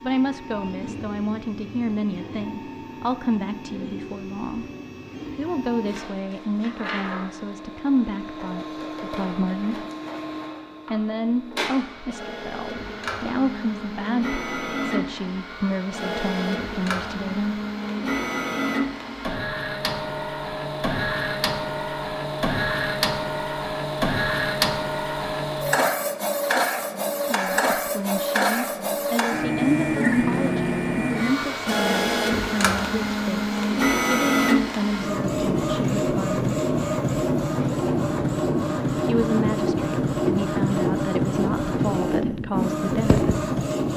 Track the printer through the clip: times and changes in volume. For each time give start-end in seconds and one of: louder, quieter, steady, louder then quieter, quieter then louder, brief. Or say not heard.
0.0-43.9 louder.